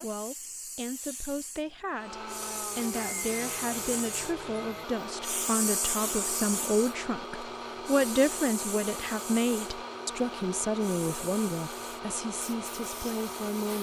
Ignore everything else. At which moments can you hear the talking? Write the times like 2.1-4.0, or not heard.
0.0-13.7.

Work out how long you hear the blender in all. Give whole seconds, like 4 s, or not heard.
12 s.